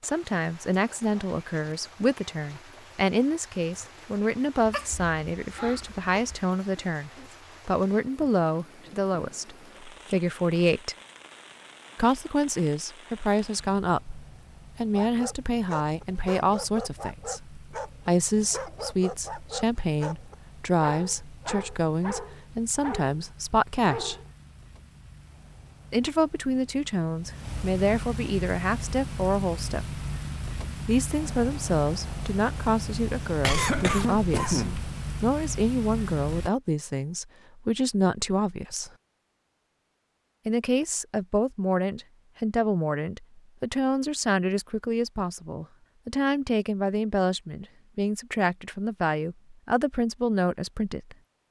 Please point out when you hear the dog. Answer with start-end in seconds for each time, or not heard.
14.8-24.3.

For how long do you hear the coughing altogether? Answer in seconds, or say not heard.
3 s.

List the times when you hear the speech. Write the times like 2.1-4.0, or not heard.
0.0-10.9, 11.9-24.1, 25.9-30.0, 30.9-38.9, 40.5-51.1.